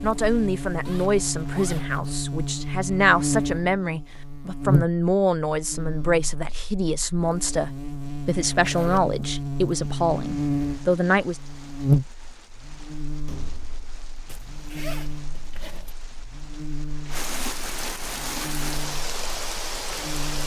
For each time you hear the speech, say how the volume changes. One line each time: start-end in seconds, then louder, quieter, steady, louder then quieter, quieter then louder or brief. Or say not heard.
0.0-11.4 steady.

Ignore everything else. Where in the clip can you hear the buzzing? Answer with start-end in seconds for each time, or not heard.
0.0-20.4.